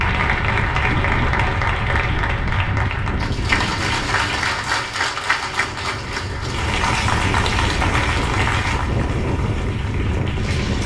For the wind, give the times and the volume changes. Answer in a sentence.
You can hear the wind from 0.0 to 10.8 s, getting quieter then louder.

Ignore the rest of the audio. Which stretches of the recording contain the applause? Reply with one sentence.
You can hear the applause from 0.0 to 10.8 s.